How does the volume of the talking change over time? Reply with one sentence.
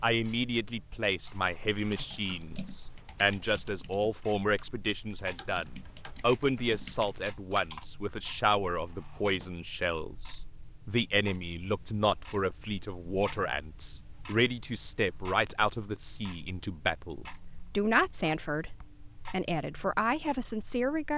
The loudness of the talking stays about the same.